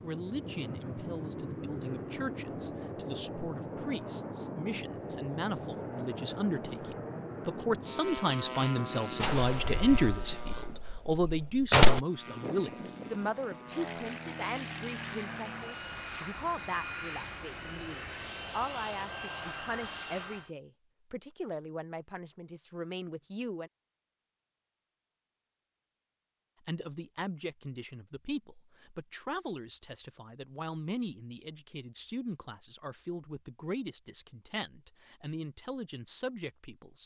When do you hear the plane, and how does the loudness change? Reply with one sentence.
You can hear the plane from 0.0 to 10.8 s, at a steady volume; and from 12.1 to 20.5 s, at a steady volume.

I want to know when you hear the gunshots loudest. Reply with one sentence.
The volume of the gunshots peaks at 12 seconds.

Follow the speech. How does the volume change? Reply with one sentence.
The loudness of the speech goes up, then down.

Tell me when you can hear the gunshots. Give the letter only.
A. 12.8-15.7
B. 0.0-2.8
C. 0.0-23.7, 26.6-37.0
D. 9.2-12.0
D.